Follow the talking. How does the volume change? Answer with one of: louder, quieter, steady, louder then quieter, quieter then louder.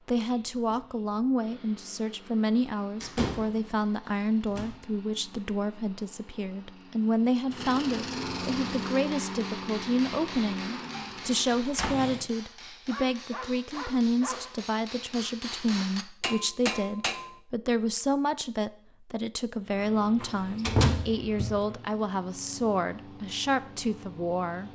steady.